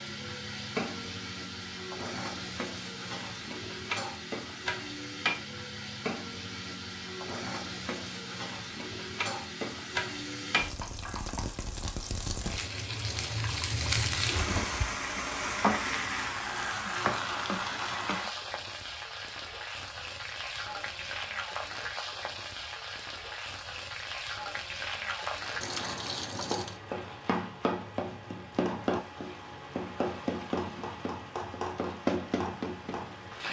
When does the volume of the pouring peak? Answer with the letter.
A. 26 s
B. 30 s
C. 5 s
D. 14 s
A.